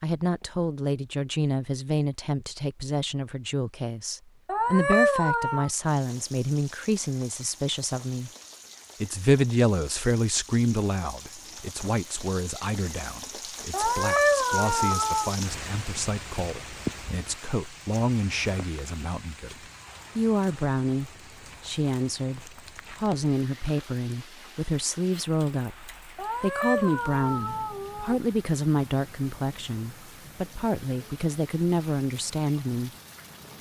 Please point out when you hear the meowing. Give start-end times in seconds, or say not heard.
4.5-5.7, 13.7-15.3, 26.1-28.1.